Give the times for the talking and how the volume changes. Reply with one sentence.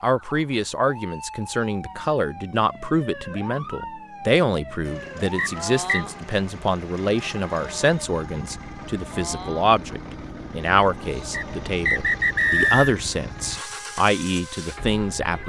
You can hear the talking from 0.0 to 15.4 s, at a steady volume.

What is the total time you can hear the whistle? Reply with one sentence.
The whistle can be heard for 2 seconds in total.